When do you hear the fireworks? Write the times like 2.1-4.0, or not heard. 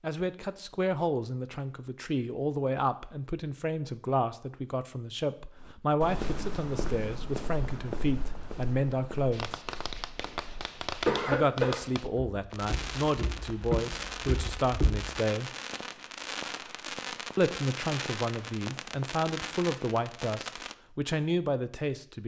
9.3-20.8.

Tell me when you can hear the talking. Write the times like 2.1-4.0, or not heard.
0.0-9.6, 11.2-15.6, 17.4-22.2.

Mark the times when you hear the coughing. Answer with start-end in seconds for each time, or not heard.
11.1-11.8.